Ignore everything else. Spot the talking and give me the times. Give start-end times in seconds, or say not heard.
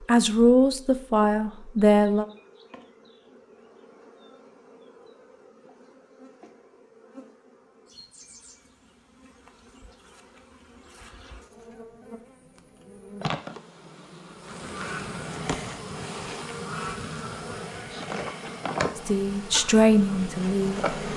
0.1-2.2, 18.9-21.1.